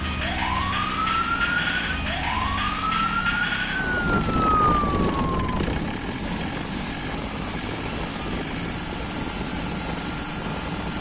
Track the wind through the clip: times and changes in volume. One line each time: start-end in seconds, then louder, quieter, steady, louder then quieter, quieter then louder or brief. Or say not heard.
3.8-10.9 quieter.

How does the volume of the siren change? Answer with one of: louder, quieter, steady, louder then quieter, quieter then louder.
steady.